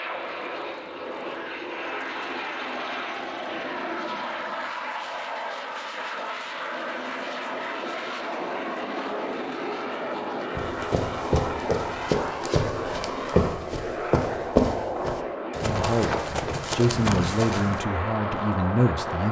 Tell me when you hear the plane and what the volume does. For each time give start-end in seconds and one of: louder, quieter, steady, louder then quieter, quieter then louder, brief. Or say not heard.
0.0-19.2 steady.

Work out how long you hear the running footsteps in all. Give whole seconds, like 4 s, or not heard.
7 s.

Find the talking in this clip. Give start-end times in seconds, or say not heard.
15.6-19.2.